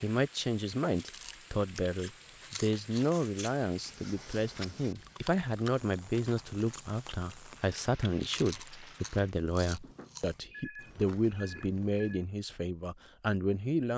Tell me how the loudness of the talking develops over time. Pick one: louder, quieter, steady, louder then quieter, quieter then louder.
steady.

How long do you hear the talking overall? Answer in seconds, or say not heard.
14 s.